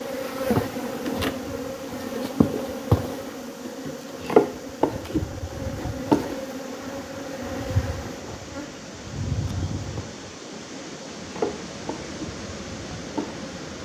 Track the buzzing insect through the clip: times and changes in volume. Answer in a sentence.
The buzzing insect can be heard from 0.0 to 13.8 s, getting quieter.